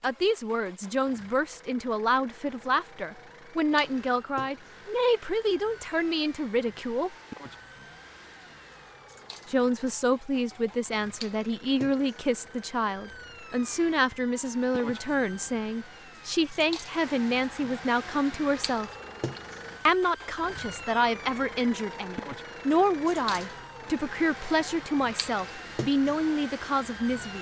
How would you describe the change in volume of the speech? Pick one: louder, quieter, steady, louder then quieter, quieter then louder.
steady.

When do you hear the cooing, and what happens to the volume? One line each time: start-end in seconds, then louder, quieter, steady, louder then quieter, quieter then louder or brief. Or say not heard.
not heard.